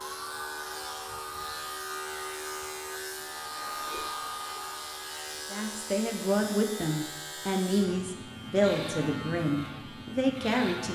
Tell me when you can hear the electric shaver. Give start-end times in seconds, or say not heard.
0.0-10.9.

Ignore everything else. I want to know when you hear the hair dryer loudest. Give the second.
4 s.